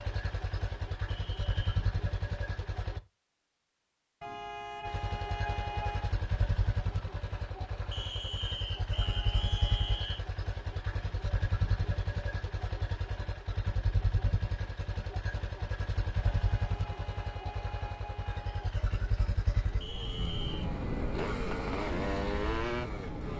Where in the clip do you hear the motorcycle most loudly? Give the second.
22 s.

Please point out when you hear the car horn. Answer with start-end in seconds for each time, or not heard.
4.2-6.2, 8.9-10.1, 16.2-18.7.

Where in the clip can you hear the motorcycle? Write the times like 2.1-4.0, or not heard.
0.0-3.0, 4.8-23.3.